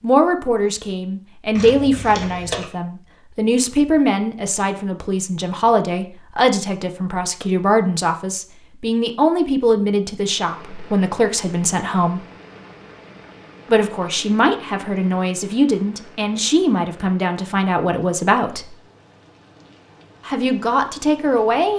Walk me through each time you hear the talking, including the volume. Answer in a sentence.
You can hear the talking from 0.0 to 12.2 s, at a steady volume; from 13.7 to 18.8 s, at a steady volume; and briefly from 20.2 to 21.7 s.